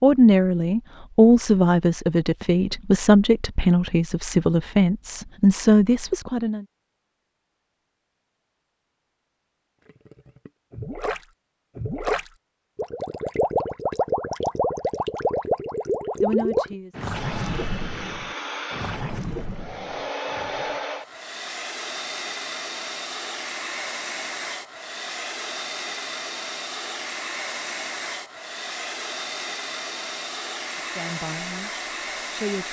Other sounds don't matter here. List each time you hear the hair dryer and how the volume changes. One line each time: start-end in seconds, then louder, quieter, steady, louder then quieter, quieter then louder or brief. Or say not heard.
17.1-32.6 steady.